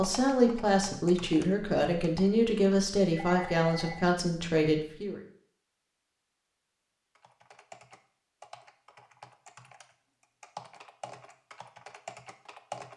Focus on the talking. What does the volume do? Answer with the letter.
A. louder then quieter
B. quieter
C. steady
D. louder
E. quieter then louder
C.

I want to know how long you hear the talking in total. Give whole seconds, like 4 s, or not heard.
5 s.